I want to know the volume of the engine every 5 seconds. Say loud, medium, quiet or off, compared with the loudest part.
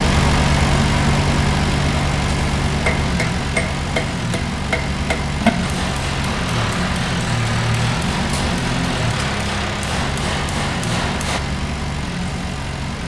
loud, loud, medium.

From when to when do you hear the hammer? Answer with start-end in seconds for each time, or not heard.
2.9-11.4.